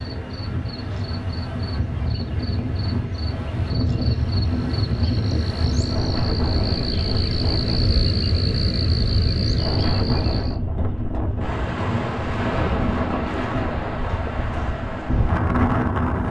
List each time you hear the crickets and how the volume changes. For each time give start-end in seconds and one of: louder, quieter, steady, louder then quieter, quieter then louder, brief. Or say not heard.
0.0-10.6 louder.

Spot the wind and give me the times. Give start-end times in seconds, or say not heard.
0.0-16.2.